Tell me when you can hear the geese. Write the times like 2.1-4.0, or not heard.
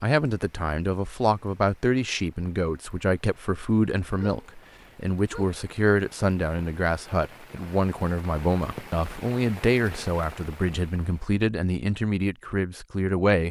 not heard.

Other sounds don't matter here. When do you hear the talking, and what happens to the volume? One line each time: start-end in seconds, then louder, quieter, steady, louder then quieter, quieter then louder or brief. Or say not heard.
0.0-13.4 steady.